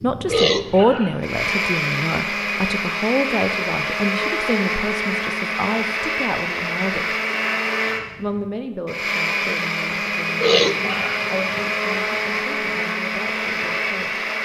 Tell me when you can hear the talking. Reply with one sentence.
The talking can be heard from 0.0 to 7.2 s and from 8.2 to 14.3 s.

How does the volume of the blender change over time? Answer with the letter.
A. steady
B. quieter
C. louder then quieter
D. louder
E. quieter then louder
A.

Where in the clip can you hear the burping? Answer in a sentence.
The burping can be heard from 0.2 to 1.4 s and from 10.3 to 11.7 s.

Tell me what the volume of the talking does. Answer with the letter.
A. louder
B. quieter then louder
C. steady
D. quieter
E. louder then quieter
D.